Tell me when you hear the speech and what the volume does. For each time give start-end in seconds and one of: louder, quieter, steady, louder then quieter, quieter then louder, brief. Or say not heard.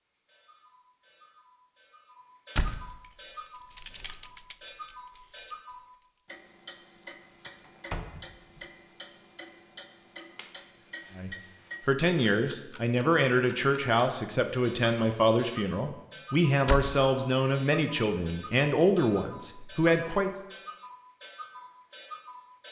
11.2-20.4 steady.